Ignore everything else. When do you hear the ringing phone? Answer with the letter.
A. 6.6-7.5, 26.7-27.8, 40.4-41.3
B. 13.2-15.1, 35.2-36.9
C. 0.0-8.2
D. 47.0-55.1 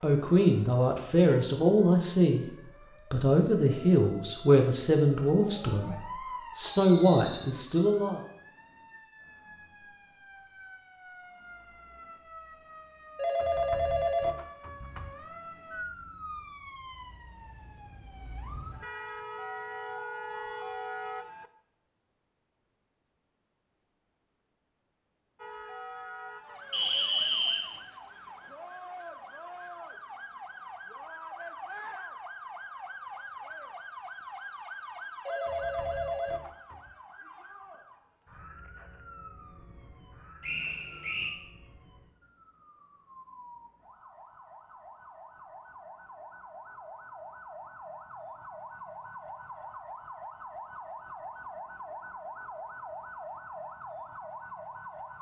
B.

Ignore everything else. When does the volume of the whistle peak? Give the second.
27 s.